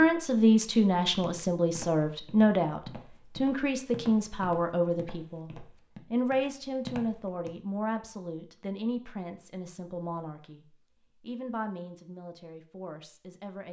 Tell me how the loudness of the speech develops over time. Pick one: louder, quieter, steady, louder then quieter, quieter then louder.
quieter.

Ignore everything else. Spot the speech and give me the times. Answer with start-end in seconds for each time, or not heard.
0.0-13.6.